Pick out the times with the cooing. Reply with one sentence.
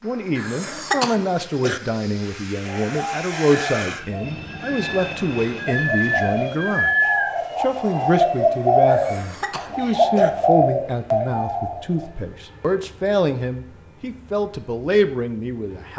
You can hear the cooing from 2.6 to 12.1 s.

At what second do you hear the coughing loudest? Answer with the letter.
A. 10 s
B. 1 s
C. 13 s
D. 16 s
B.